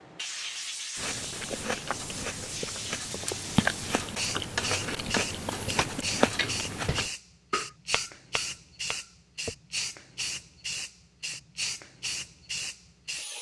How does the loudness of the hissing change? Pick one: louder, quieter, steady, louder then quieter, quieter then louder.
steady.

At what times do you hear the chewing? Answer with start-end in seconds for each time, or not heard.
0.9-7.1.